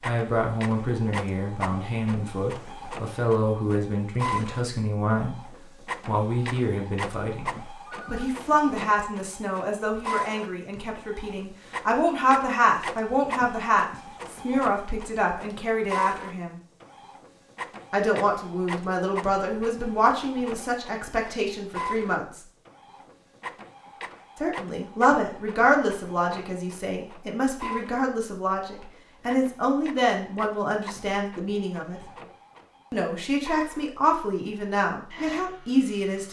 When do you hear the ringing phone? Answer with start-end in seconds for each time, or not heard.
7.8-8.3.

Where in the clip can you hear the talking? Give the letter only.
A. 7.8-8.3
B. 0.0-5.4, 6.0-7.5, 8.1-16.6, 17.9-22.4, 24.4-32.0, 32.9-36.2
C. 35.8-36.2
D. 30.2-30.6
B.